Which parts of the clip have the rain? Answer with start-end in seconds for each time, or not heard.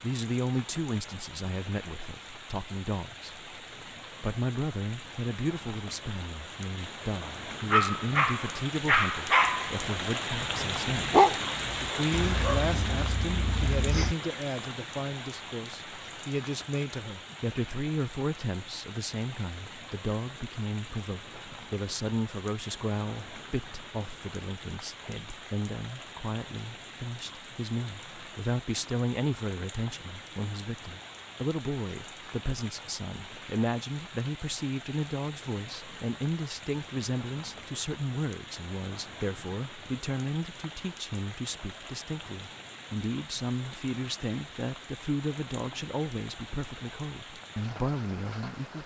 0.0-48.8.